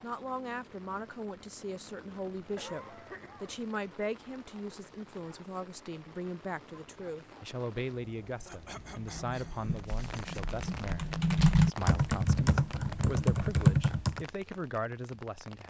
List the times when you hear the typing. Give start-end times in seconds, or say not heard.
8.9-14.2.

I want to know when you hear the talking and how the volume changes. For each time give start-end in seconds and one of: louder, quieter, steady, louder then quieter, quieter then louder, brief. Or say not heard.
0.0-15.6 steady.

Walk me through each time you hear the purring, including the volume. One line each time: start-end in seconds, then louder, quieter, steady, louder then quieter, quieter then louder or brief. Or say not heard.
not heard.